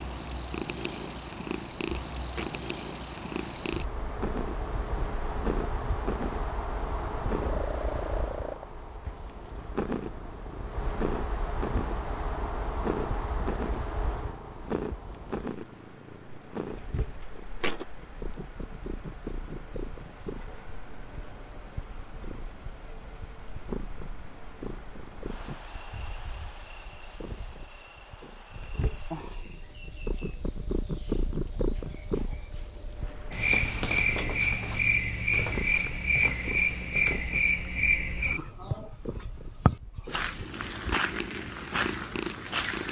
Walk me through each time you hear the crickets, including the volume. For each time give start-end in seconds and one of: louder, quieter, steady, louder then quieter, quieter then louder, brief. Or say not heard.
0.0-42.8 quieter then louder.